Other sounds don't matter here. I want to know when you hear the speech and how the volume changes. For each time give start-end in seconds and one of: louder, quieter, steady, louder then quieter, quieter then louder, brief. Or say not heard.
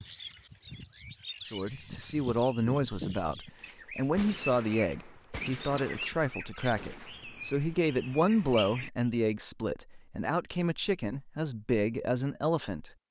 1.4-12.9 steady.